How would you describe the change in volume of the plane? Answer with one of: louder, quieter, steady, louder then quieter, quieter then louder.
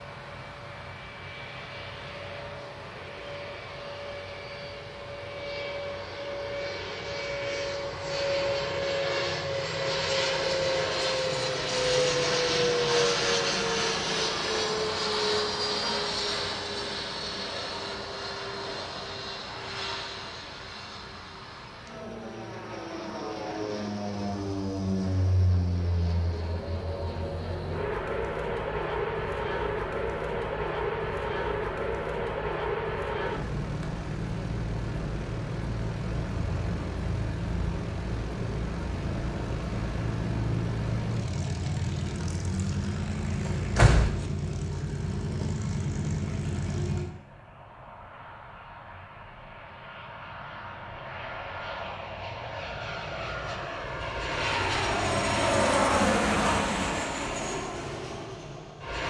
steady.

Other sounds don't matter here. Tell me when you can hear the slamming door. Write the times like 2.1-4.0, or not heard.
43.5-44.2.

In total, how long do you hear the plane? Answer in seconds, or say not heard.
59 s.